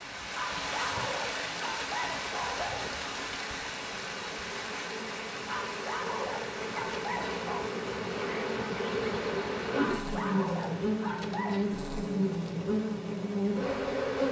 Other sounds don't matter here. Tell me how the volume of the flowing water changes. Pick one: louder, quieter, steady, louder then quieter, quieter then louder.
quieter.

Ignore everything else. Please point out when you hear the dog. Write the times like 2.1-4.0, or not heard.
0.3-3.0, 5.5-7.7, 9.8-11.7.